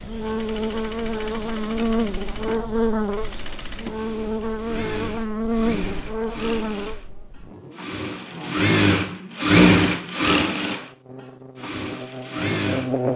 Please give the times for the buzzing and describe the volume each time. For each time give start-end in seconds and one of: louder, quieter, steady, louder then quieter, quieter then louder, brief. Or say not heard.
0.0-13.1 quieter.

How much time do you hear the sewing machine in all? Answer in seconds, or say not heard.
13 s.